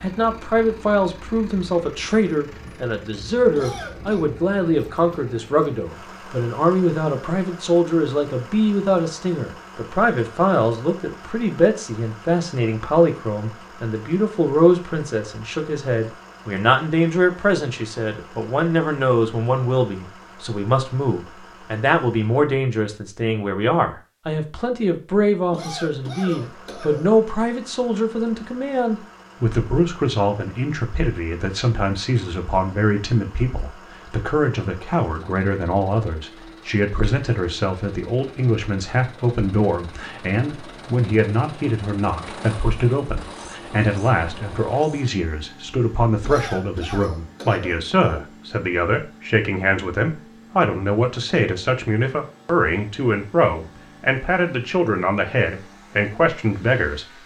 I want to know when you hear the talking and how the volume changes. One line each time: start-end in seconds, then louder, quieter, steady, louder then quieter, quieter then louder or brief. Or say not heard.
0.0-57.2 steady.